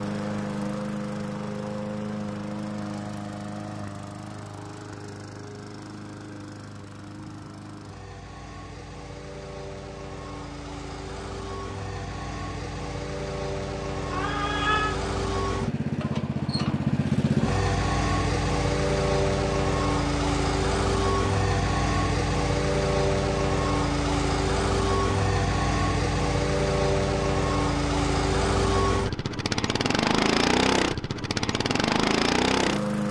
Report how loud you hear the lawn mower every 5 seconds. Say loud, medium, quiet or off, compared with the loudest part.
medium, quiet, medium, loud, loud, loud, loud.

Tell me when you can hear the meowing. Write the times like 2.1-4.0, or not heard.
14.1-15.0.